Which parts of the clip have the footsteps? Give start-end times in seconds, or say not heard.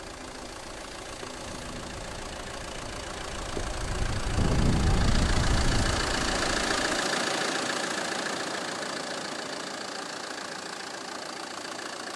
not heard.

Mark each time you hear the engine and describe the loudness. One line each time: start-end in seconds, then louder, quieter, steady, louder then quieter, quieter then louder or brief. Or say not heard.
0.0-12.1 louder then quieter.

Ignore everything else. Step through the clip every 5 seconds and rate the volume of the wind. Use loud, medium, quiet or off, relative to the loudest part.
loud, loud, off.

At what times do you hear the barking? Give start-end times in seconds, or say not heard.
not heard.